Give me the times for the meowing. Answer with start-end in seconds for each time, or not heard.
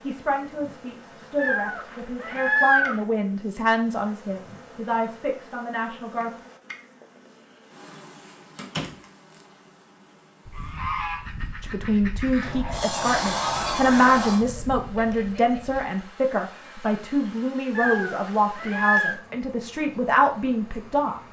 1.4-3.0, 17.8-19.1.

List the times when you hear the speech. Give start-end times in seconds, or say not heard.
0.0-6.3, 11.6-21.2.